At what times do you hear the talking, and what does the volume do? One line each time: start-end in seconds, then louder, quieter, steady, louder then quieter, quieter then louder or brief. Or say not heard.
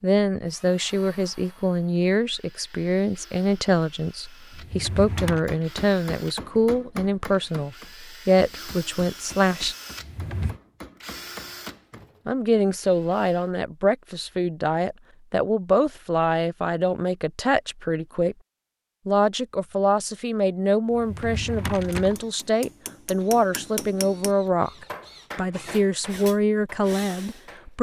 0.0-9.8 steady
12.2-18.4 steady
19.1-27.7 steady.